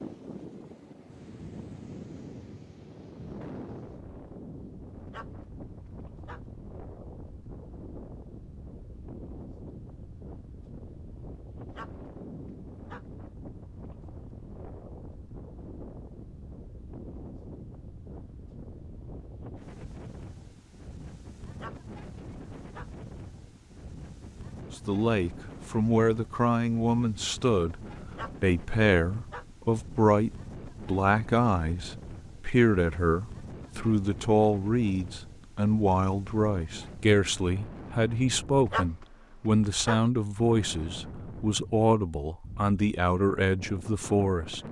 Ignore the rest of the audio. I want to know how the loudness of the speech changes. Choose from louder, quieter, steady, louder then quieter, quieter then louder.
steady.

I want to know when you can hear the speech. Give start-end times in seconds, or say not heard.
24.8-44.6.